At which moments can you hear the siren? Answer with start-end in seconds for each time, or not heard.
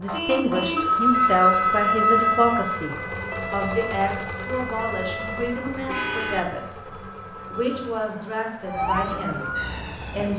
0.0-6.0, 8.7-10.3.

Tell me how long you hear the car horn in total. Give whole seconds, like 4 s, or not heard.
2 s.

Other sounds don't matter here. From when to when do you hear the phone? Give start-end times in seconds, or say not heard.
0.8-2.8, 6.3-7.9.